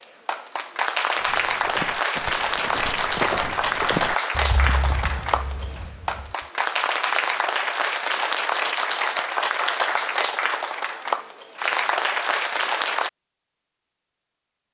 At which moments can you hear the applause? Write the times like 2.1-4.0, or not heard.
0.0-13.1.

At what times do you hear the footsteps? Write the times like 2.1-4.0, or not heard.
1.1-6.5.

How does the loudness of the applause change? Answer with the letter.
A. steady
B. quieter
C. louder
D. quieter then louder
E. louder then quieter
A.